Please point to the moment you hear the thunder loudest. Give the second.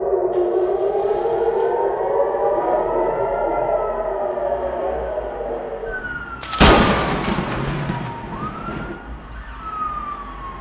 7 s.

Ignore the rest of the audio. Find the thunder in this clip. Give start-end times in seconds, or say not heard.
6.4-8.9.